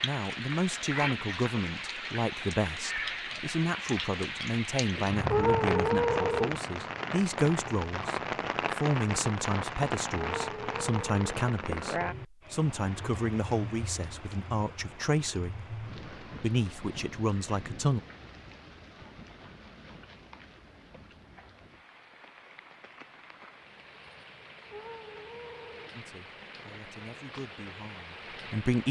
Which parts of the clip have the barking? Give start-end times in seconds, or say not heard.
not heard.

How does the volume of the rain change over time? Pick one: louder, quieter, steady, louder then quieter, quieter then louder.
quieter.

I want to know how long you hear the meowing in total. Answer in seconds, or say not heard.
4 s.